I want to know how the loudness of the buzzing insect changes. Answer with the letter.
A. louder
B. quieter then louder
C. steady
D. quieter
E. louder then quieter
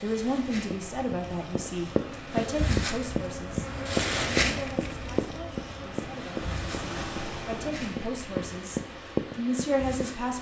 E.